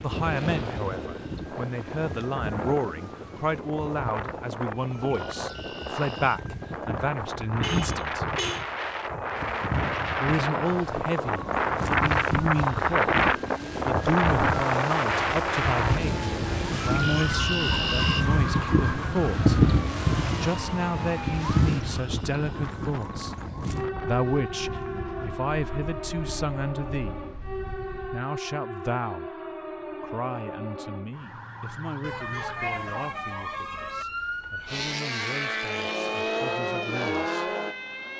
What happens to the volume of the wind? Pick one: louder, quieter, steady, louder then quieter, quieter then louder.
louder then quieter.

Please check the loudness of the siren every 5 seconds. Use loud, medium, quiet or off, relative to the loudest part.
quiet, medium, medium, loud, medium, medium, medium, medium.